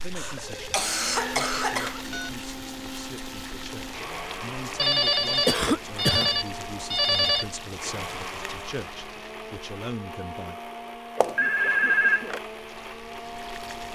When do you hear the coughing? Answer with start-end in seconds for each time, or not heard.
0.1-2.0, 5.5-6.3, 11.2-12.3.